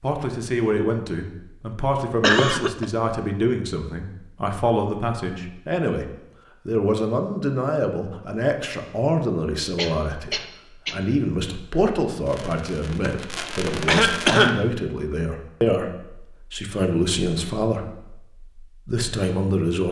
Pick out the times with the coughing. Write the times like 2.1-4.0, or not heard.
2.2-2.9, 9.8-11.0, 13.4-14.7.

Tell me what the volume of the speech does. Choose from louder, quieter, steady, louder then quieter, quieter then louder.
steady.